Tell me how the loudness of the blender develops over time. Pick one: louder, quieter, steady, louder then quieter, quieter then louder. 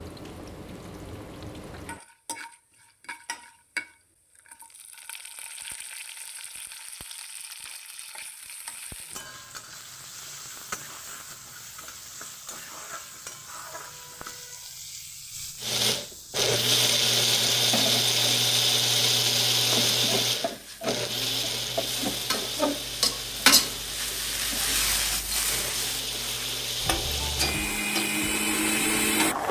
quieter then louder.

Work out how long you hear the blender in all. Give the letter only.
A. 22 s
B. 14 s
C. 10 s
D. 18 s
B.